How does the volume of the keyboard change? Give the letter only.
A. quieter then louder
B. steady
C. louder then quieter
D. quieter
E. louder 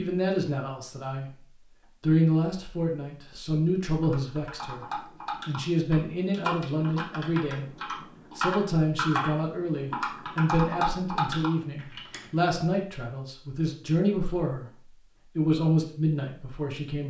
E.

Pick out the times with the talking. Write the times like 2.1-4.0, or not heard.
0.0-1.4, 2.0-17.0.